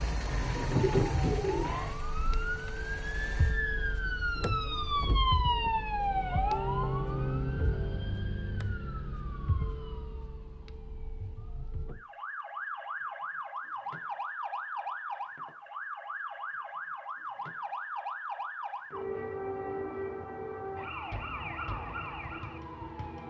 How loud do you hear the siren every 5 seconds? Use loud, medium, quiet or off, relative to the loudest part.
loud, loud, medium, medium, medium.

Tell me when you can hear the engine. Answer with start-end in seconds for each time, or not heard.
0.0-3.6.